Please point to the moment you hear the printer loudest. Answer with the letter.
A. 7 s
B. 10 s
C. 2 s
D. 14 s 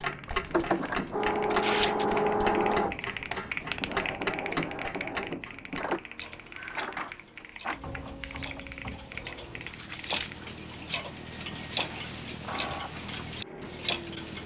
C.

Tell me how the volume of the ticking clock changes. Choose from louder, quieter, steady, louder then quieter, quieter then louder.
quieter then louder.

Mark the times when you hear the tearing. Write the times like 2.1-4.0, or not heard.
0.3-2.1, 9.7-10.4.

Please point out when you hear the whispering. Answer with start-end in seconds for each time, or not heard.
not heard.